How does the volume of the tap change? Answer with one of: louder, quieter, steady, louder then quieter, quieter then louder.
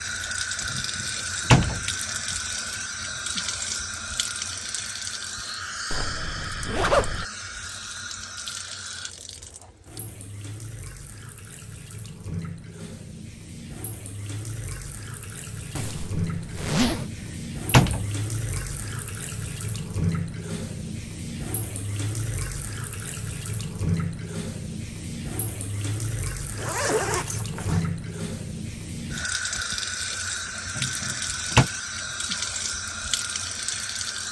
quieter then louder.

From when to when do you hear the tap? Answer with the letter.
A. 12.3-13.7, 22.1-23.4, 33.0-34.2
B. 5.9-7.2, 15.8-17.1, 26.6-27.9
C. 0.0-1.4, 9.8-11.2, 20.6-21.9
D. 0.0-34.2
D.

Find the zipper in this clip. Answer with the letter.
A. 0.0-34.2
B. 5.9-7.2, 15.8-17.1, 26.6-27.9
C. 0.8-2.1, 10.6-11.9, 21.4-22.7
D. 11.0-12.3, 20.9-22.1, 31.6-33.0
B.